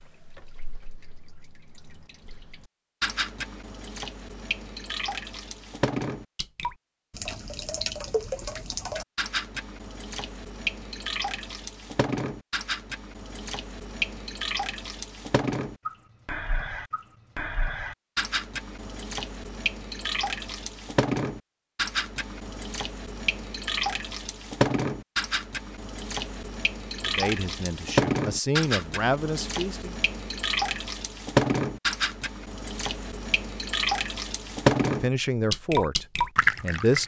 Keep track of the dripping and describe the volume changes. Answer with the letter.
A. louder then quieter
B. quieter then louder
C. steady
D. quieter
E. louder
E.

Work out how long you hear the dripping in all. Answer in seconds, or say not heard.
37 s.